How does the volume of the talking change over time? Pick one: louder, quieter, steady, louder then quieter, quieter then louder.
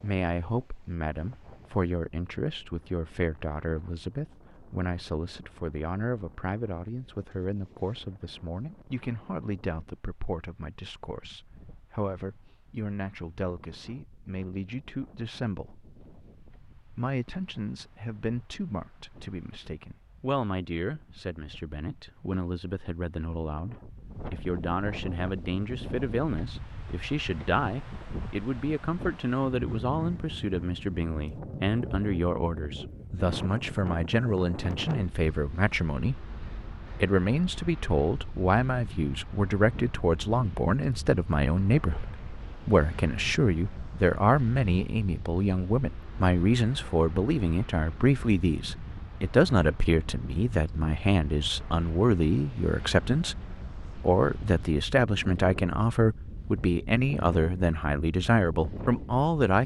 louder.